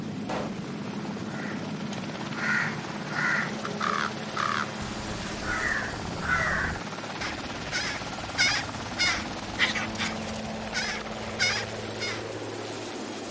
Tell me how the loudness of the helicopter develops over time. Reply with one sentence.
The loudness of the helicopter stays about the same.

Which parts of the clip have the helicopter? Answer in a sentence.
The helicopter can be heard from 0.0 to 13.2 s.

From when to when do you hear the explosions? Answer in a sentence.
The explosions can be heard from 0.2 to 0.7 s.